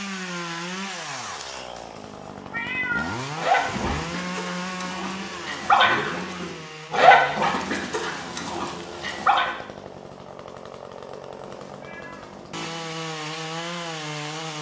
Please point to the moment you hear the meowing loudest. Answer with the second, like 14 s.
3 s.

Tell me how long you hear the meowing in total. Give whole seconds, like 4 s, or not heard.
3 s.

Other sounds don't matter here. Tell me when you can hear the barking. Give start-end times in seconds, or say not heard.
3.4-9.6.